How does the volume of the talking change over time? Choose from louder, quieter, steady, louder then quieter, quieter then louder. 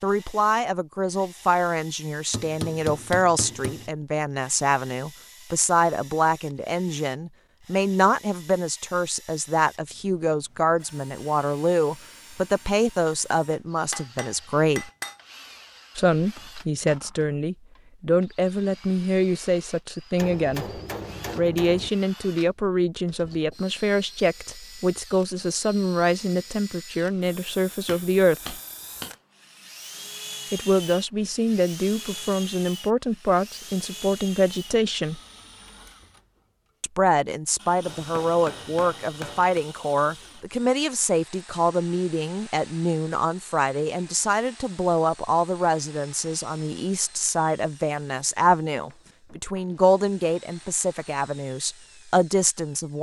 steady.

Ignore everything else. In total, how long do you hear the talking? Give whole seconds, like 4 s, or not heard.
48 s.